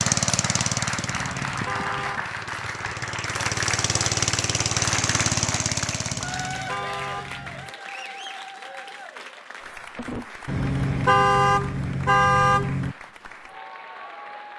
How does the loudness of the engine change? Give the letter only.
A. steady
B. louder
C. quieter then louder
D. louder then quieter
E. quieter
C.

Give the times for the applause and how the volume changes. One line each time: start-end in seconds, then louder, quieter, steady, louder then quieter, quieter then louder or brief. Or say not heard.
0.0-14.5 quieter.